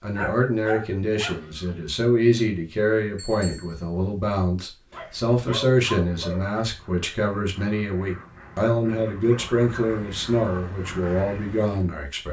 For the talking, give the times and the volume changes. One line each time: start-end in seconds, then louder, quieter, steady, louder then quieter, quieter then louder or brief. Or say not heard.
0.0-12.2 steady.